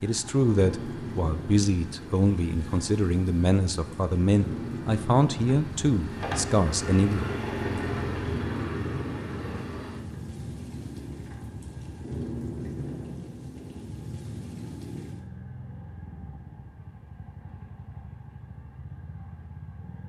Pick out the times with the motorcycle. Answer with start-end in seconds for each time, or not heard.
0.0-20.0.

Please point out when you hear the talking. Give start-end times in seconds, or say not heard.
0.0-7.2.